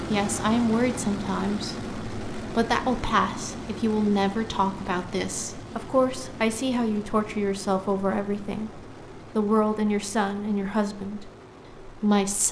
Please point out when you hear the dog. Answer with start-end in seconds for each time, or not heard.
not heard.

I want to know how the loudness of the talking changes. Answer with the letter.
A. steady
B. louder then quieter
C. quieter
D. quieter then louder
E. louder
A.